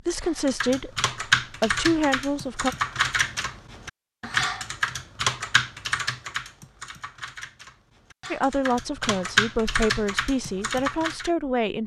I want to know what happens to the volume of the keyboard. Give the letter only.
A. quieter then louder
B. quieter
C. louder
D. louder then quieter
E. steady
A.